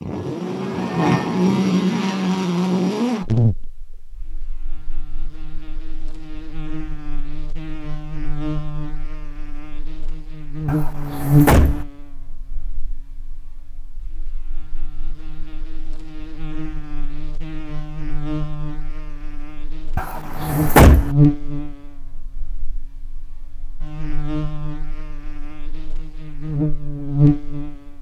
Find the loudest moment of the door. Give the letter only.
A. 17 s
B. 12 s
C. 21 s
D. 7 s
C.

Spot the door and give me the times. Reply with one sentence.
The door can be heard from 10.7 to 11.8 s and from 19.9 to 21.1 s.